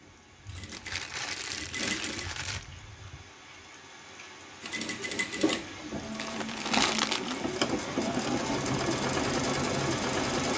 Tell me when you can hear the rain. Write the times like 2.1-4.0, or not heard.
0.0-10.5.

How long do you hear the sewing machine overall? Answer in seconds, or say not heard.
8 s.